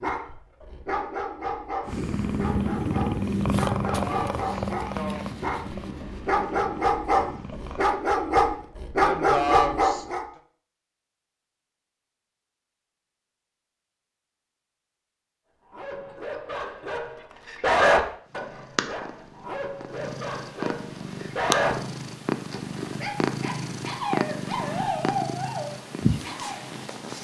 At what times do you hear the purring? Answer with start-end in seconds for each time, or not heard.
1.9-7.8, 18.2-27.1.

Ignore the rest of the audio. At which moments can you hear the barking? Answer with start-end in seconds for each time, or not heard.
0.0-10.2, 15.7-21.8, 22.5-26.6.